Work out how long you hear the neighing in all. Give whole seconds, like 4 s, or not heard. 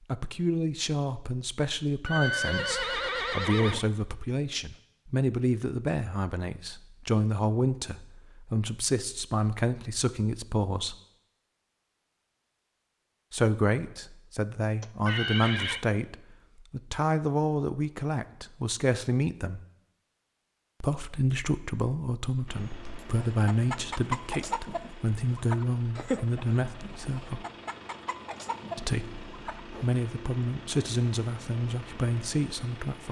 3 s.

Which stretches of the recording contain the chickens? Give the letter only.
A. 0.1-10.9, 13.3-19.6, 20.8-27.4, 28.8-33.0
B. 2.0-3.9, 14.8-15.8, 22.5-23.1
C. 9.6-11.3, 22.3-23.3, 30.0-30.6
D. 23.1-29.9
D.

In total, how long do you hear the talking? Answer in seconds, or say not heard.
28 s.